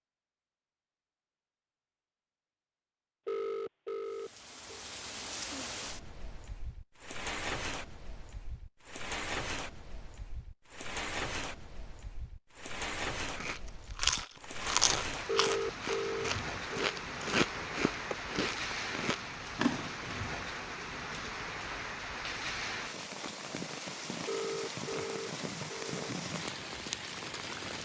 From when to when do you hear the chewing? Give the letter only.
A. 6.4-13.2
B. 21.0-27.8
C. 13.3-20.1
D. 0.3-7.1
C.